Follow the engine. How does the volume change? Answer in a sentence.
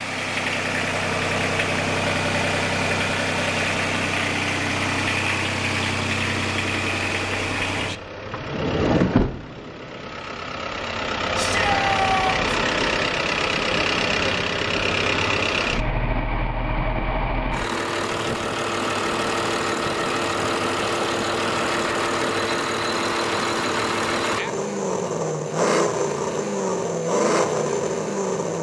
The loudness of the engine stays about the same.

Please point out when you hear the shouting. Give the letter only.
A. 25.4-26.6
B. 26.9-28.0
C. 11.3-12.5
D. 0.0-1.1
C.